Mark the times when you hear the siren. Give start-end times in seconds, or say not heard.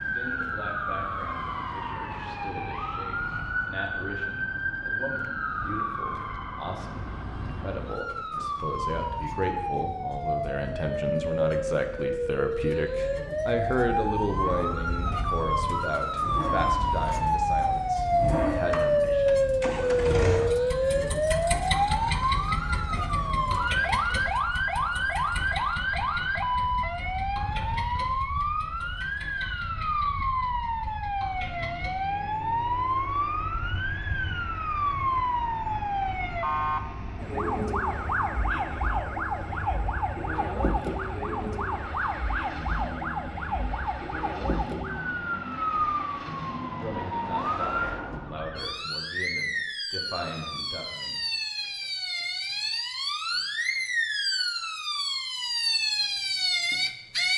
0.0-57.3.